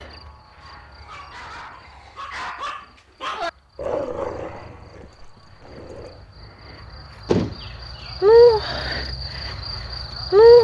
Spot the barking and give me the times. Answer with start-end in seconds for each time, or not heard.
0.6-6.3.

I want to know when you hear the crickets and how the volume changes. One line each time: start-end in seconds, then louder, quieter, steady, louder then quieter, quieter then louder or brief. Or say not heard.
0.0-10.5 quieter then louder.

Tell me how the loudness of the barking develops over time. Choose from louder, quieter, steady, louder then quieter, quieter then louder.
louder then quieter.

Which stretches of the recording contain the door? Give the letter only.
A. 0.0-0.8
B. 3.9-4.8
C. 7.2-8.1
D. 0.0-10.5
C.